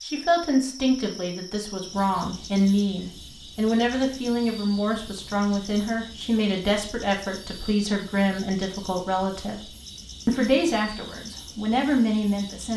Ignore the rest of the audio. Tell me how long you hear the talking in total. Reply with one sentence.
The talking can be heard for 13 seconds in total.